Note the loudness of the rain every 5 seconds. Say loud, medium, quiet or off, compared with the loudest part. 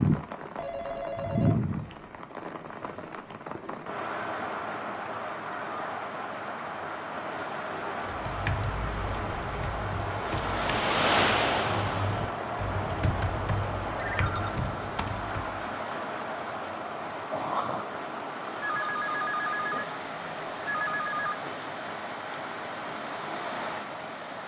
loud, medium, loud, medium, medium.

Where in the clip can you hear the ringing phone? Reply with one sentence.
The ringing phone can be heard from 0.6 to 2.2 s, from 13.9 to 14.5 s, from 18.6 to 19.9 s and from 20.6 to 21.4 s.